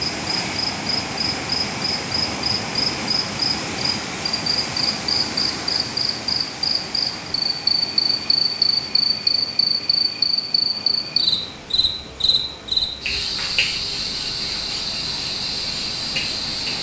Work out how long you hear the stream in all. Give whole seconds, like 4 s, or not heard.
17 s.